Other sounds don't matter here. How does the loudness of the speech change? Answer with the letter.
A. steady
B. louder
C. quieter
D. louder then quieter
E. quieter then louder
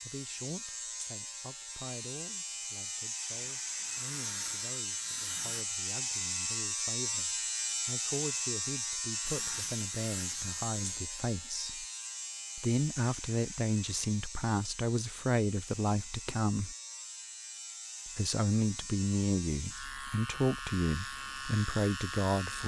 B.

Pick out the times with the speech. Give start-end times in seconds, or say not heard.
0.0-11.8, 12.6-16.8, 18.1-22.6.